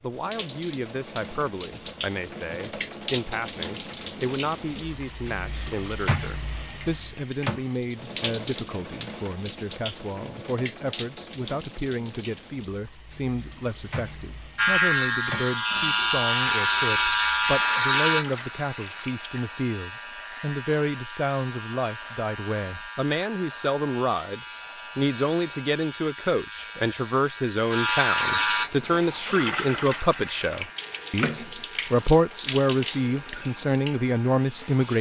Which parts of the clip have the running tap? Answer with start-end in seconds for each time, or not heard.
0.0-19.2, 28.1-34.9.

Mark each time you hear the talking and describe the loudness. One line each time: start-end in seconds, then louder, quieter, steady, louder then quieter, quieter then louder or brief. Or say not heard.
0.0-34.9 louder.